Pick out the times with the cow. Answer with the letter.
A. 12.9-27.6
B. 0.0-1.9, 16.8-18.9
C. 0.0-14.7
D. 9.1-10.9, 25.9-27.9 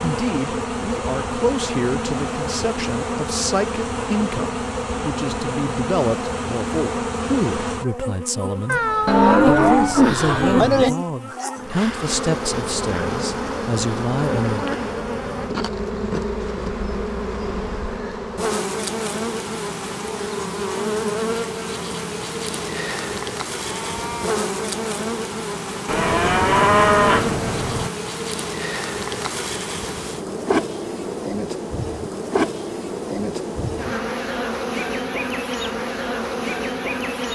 D.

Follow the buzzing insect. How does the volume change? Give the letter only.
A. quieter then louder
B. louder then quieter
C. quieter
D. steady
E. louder
D.